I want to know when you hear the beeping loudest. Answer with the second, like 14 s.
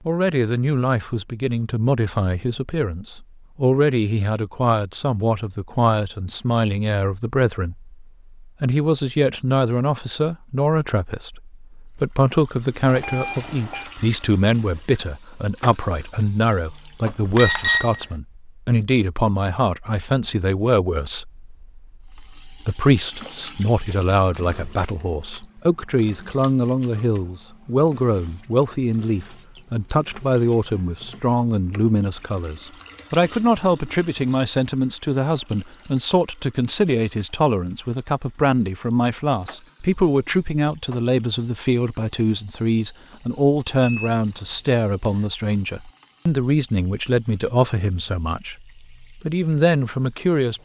18 s.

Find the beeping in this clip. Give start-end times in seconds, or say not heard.
12.8-13.9, 17.2-18.1, 43.8-45.3.